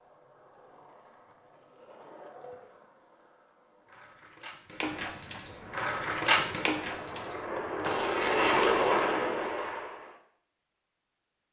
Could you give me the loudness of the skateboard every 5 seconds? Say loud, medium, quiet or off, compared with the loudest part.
quiet, loud, off.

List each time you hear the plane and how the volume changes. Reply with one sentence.
The plane can be heard from 5.5 to 10.2 s, getting louder then quieter.